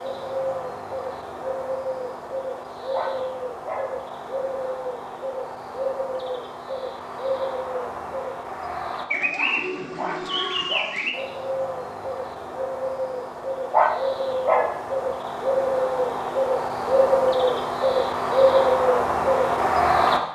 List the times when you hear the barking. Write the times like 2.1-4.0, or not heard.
2.9-4.0, 9.9-11.1, 13.7-14.8.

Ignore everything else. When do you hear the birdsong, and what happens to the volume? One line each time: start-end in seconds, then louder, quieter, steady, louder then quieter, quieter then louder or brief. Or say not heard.
0.0-20.3 louder.